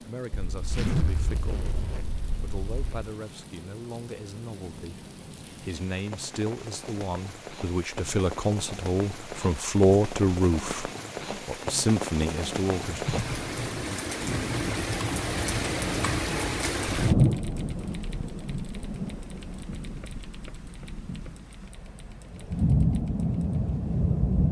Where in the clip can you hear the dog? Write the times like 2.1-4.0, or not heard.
not heard.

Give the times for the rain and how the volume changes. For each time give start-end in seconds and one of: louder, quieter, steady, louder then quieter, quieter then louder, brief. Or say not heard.
0.0-24.4 louder.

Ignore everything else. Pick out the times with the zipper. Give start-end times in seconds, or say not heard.
0.4-3.1.